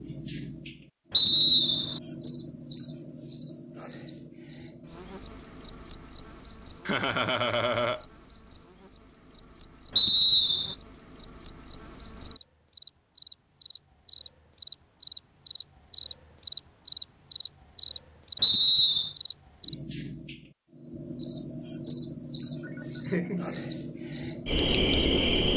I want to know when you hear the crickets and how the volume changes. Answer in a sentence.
The crickets can be heard from 0.0 to 25.5 s, getting quieter then louder.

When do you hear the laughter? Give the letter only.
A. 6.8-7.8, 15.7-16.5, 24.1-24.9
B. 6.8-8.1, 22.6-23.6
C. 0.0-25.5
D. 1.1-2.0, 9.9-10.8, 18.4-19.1
B.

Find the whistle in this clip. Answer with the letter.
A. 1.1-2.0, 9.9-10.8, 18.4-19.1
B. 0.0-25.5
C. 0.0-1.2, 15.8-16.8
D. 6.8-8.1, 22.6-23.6
A.